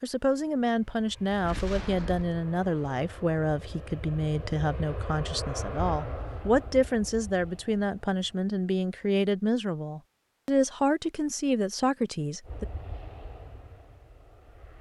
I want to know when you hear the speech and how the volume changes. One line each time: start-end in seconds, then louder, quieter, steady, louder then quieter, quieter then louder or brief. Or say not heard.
0.0-12.7 steady.